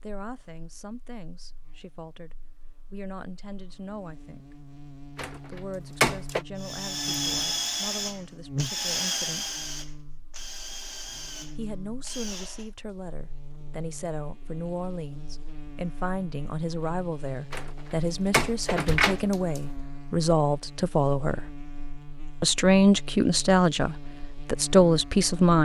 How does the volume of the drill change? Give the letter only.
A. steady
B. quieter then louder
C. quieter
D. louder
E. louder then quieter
C.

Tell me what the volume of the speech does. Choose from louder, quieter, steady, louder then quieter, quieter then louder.
louder.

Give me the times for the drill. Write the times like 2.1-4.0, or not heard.
6.6-12.7.